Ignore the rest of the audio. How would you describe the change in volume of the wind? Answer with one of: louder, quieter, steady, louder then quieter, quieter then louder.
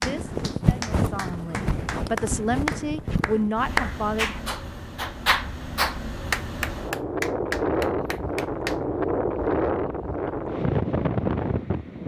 quieter then louder.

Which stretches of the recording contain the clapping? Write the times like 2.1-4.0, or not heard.
0.0-8.8.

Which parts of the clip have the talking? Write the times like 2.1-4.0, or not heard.
0.0-4.4.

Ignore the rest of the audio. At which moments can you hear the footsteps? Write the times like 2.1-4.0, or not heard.
not heard.